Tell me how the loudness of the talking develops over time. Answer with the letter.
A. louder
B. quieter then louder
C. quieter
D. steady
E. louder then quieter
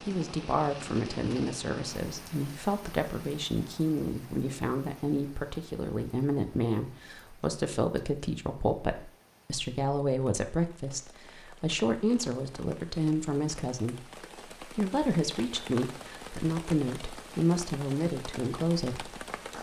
D.